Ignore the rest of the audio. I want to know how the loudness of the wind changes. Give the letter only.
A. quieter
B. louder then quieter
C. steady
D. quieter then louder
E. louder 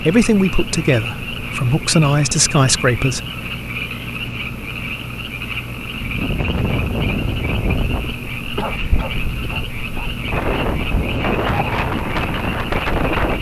D.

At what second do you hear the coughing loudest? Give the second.
9 s.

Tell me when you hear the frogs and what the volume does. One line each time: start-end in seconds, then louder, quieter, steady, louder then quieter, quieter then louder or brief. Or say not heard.
0.0-13.3 steady.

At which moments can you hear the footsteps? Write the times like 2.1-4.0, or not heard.
not heard.